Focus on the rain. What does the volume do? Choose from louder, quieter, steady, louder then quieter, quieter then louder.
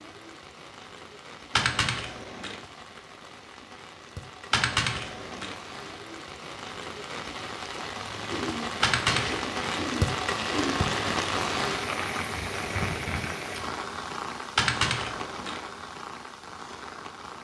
louder then quieter.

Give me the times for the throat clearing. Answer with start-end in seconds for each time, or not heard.
8.2-10.8.